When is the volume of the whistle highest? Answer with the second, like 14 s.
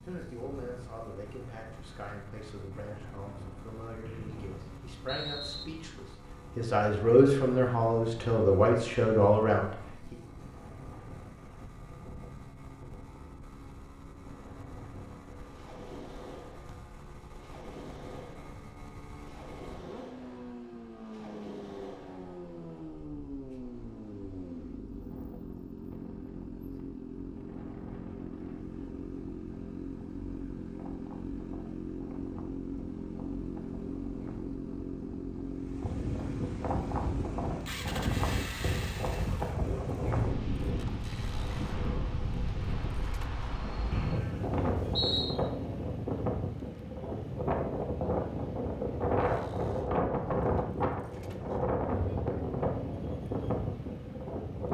45 s.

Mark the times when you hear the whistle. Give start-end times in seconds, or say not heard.
4.0-5.7, 43.9-45.4.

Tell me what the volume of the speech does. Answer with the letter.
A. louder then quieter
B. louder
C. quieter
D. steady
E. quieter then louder
B.